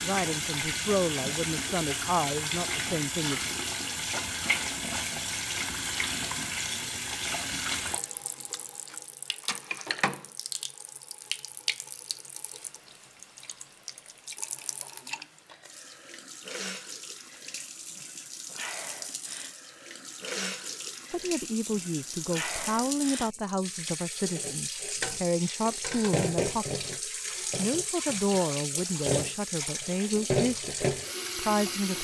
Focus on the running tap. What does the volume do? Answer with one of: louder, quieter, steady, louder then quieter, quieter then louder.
quieter then louder.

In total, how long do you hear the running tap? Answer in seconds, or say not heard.
32 s.